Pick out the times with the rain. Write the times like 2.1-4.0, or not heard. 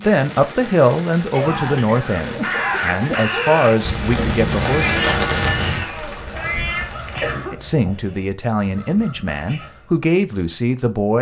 0.0-7.3.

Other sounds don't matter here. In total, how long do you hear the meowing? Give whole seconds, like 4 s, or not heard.
2 s.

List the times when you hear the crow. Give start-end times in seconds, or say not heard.
2.2-10.1.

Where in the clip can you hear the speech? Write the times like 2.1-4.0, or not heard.
0.0-4.9, 7.5-11.1.